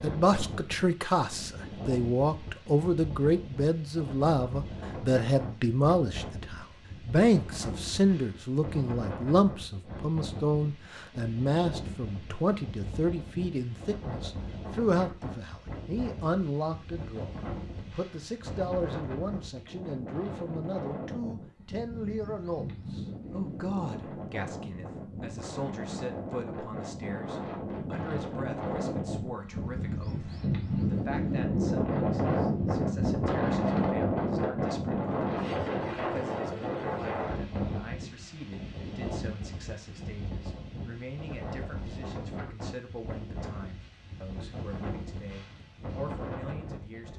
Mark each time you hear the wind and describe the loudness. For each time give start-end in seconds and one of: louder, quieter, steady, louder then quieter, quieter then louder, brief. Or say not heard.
0.0-47.1 louder then quieter.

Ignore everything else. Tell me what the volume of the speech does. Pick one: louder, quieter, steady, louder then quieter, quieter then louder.
quieter.